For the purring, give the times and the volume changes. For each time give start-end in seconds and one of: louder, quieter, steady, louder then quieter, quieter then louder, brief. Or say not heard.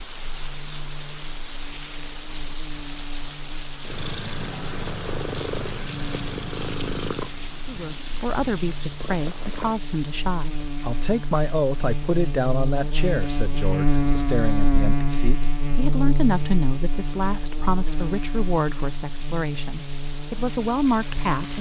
3.8-9.8 quieter then louder.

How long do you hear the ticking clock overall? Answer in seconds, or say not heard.
not heard.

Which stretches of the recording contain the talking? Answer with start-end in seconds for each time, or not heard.
7.7-21.5.